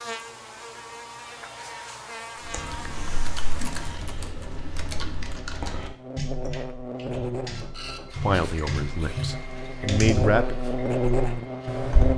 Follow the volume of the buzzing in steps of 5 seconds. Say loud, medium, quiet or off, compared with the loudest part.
quiet, medium, loud.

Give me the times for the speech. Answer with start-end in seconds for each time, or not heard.
8.2-10.6.